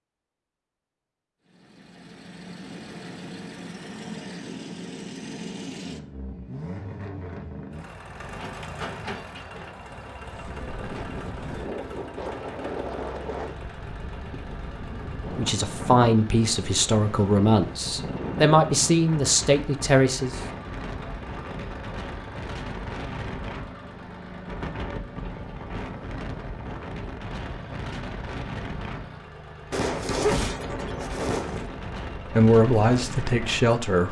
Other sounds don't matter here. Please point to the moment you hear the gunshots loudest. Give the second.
30 s.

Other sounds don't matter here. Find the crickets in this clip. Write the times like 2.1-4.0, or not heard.
not heard.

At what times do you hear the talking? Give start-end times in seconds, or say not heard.
15.3-20.4, 32.3-34.0.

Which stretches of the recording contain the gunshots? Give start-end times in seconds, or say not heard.
29.7-31.6.